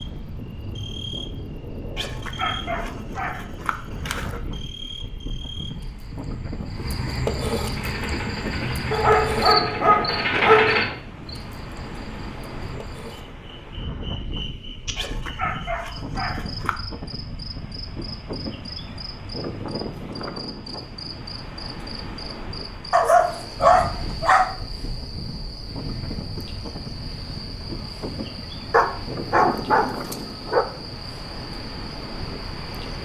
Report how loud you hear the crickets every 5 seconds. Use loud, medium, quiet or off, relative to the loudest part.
medium, loud, medium, medium, medium, medium, medium.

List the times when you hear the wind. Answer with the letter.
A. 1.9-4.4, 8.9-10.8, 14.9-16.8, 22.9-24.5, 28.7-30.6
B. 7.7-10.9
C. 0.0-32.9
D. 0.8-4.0
C.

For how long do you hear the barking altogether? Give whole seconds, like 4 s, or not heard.
10 s.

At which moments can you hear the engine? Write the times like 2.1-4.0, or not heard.
7.7-10.9.